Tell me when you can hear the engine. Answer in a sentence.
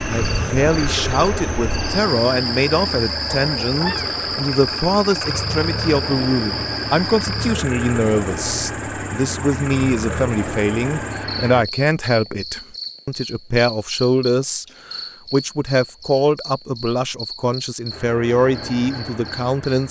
You can hear the engine from 0.0 to 11.7 s and from 17.9 to 19.8 s.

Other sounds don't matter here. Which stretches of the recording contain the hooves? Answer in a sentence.
The hooves can't be heard in this clip.